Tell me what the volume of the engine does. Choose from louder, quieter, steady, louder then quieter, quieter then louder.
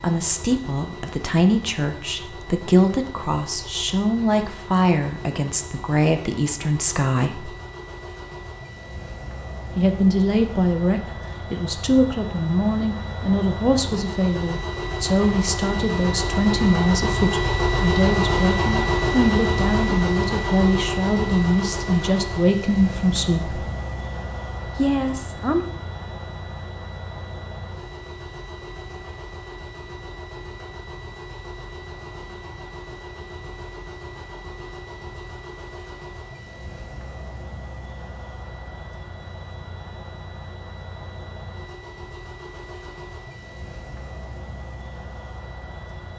louder then quieter.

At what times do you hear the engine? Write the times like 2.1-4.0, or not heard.
0.0-46.1.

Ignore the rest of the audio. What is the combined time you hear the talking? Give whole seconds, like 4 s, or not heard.
22 s.